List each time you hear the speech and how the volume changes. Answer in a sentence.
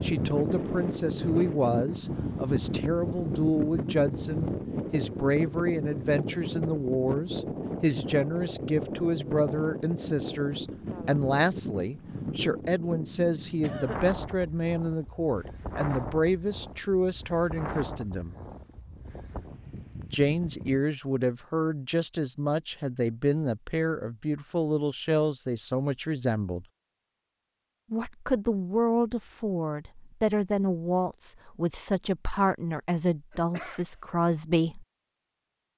The speech can be heard from 0.0 to 18.4 s, at a steady volume; from 20.1 to 26.6 s, at a steady volume; and from 27.9 to 34.9 s, at a steady volume.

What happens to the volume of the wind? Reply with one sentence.
The loudness of the wind goes down.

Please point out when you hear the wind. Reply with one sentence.
The wind can be heard from 0.0 to 20.9 s.